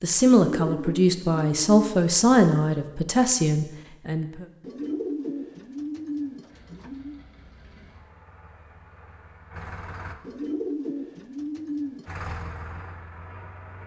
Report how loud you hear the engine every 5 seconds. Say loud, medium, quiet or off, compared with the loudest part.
off, medium, loud.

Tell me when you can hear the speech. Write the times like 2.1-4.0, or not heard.
0.0-4.5.